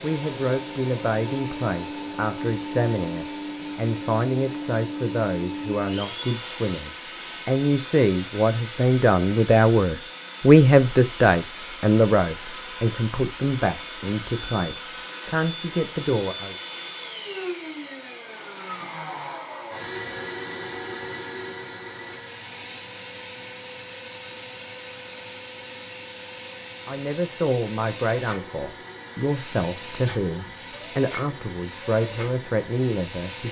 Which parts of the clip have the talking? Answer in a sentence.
The talking can be heard from 0.0 to 16.6 s and from 26.9 to 33.4 s.